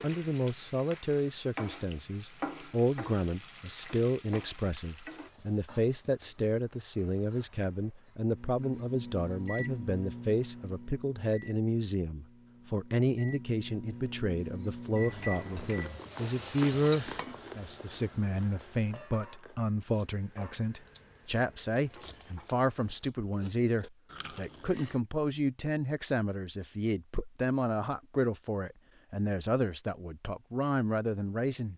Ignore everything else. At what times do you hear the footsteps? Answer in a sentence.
The footsteps can't be heard in this clip.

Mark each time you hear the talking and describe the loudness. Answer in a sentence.
The talking can be heard from 0.0 to 31.7 s, at a steady volume.